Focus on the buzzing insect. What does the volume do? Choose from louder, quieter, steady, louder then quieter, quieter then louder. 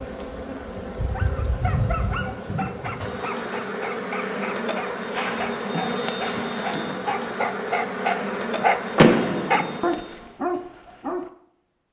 steady.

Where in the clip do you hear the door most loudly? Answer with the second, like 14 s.
9 s.